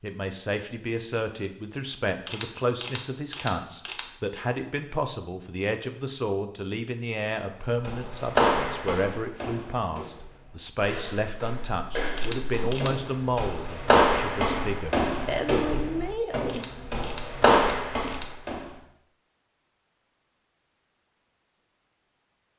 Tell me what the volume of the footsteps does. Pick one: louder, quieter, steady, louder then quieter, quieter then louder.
quieter then louder.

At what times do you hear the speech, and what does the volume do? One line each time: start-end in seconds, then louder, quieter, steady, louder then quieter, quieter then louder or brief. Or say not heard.
0.0-16.6 steady.